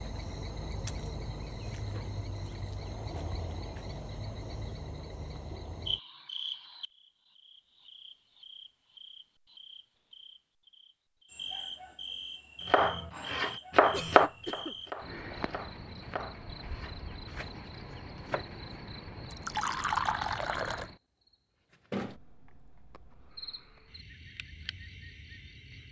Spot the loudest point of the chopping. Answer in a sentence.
The loudest moment of the chopping is at 14 seconds.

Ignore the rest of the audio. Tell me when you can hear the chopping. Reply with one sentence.
The chopping can be heard from 12.7 to 18.6 s.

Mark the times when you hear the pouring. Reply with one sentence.
The pouring can be heard from 19.3 to 20.9 s.